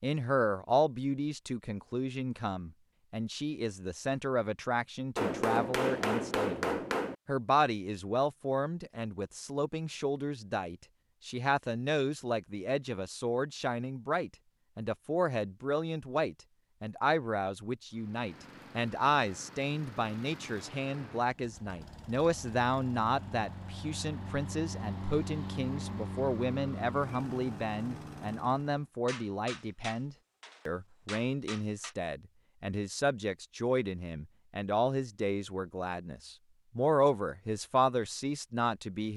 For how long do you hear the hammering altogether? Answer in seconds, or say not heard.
5 s.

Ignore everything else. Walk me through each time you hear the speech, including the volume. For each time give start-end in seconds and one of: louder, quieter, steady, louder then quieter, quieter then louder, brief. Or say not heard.
0.0-39.1 steady.